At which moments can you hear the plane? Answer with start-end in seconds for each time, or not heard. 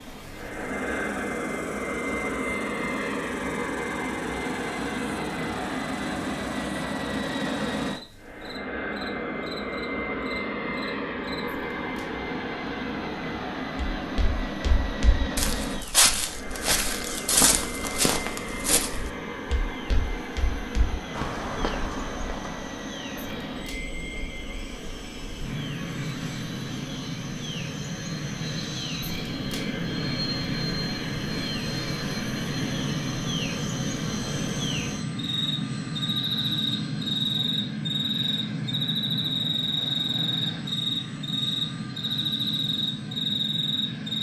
0.1-44.1.